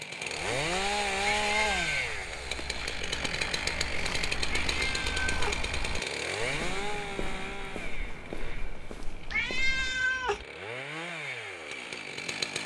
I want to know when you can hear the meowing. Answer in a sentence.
The meowing can be heard from 1.2 to 2.0 s, from 4.7 to 5.7 s and from 9.3 to 10.4 s.